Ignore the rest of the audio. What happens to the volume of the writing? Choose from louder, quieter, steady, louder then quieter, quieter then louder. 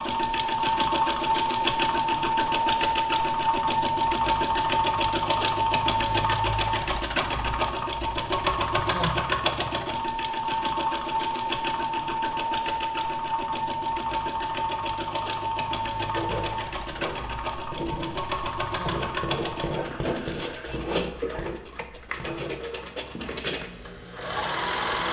louder then quieter.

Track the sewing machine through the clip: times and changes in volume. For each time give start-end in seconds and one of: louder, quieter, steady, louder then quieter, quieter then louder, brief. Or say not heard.
0.0-25.0 quieter.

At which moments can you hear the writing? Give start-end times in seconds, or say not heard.
16.1-23.4.